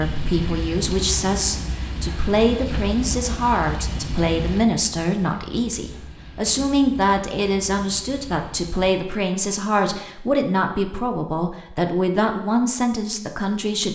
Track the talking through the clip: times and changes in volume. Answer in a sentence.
You can hear the talking from 0.0 to 13.9 s, at a steady volume.